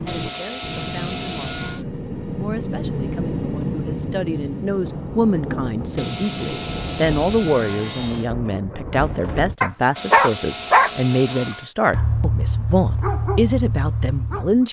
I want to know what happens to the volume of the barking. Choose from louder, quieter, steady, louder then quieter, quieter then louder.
quieter.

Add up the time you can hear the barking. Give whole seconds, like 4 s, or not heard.
5 s.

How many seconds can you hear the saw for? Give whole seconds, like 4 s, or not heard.
6 s.